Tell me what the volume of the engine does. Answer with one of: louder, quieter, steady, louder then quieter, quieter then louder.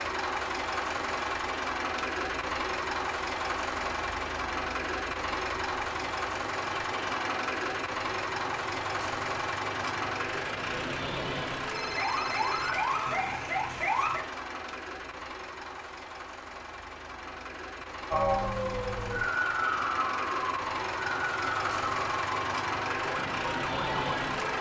quieter then louder.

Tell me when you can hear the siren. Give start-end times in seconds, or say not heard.
11.8-14.2, 18.1-24.5.